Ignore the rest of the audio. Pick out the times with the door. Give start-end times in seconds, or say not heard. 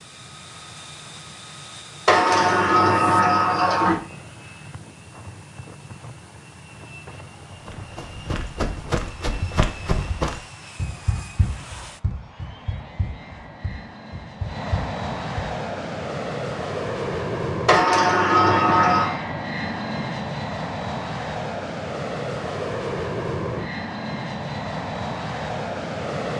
2.0-4.0, 17.6-19.1.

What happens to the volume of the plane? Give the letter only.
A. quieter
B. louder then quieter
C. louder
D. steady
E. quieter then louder
C.